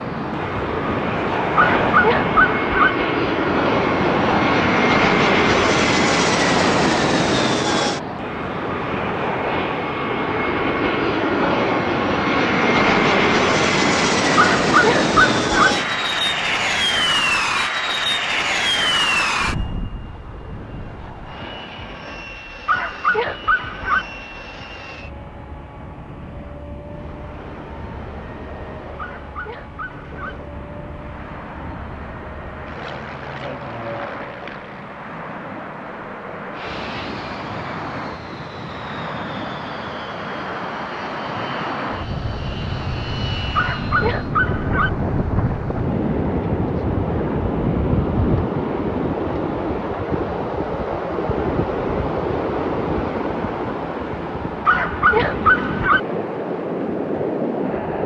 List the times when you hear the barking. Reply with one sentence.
You can hear the barking from 1.6 to 3.0 s, from 14.3 to 15.8 s, from 22.6 to 24.1 s, from 28.9 to 30.4 s, from 43.5 to 44.9 s and from 54.6 to 56.0 s.